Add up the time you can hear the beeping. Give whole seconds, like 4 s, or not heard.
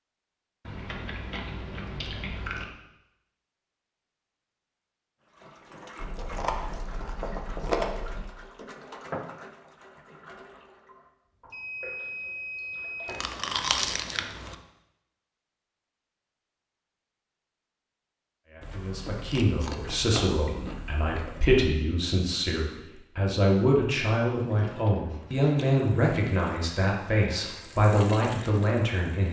2 s.